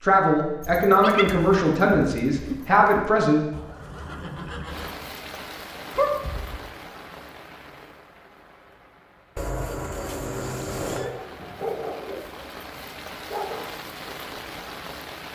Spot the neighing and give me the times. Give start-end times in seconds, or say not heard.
3.5-5.0, 9.3-11.1.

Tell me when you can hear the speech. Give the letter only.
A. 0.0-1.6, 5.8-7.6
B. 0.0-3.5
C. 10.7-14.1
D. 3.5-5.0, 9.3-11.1
B.